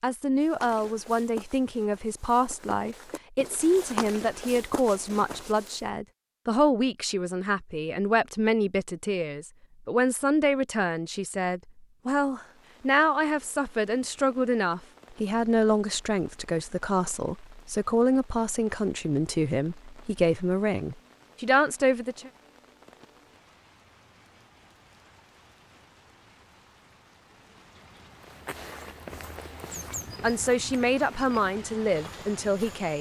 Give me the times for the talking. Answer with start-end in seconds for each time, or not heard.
0.0-22.3, 29.8-32.9.